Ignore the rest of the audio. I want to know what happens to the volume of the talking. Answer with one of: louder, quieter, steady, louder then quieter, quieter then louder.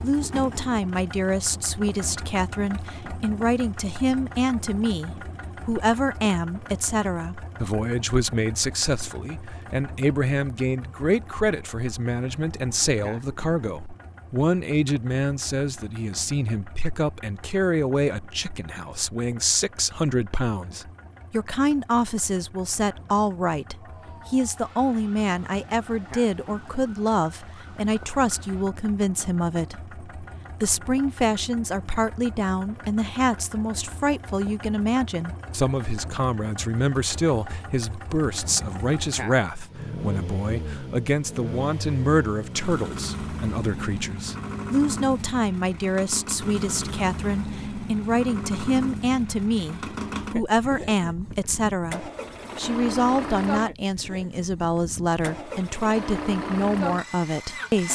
steady.